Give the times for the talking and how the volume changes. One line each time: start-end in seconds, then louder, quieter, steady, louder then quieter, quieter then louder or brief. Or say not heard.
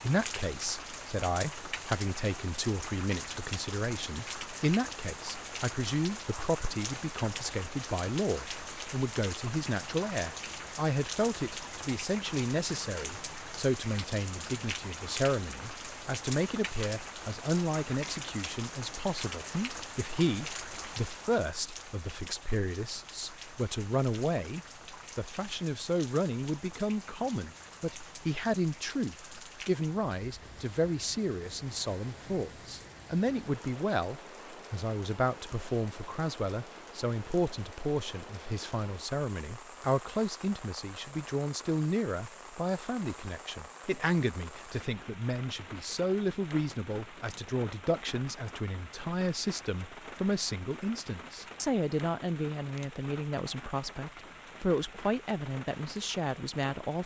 0.0-57.0 steady.